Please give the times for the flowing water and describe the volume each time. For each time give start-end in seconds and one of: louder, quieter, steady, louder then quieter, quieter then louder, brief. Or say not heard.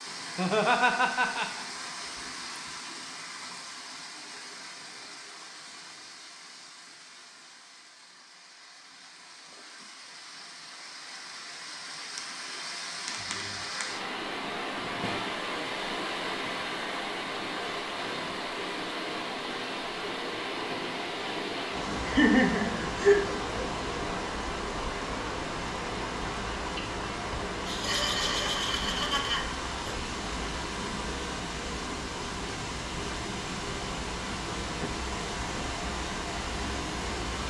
0.0-37.4 louder.